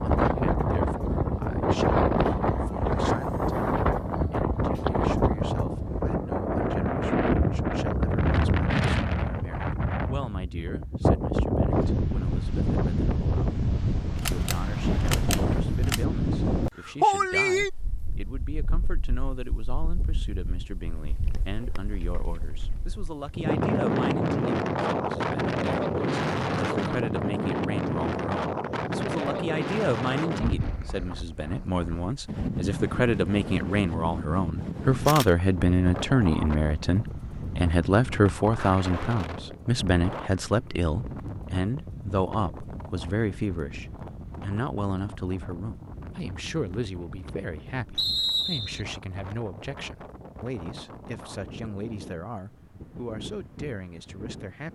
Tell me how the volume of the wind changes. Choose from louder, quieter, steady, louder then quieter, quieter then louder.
quieter.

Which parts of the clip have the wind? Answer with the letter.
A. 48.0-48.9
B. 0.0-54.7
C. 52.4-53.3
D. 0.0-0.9
B.